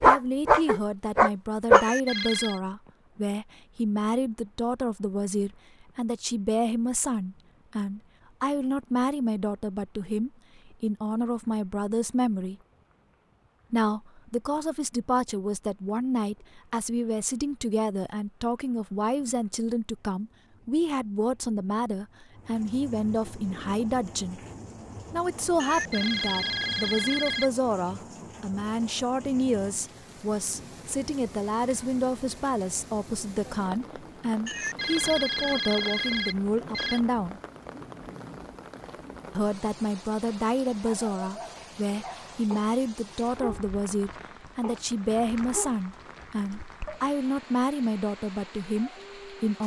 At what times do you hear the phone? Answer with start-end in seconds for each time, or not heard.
1.7-2.6, 25.6-27.5, 34.5-37.0.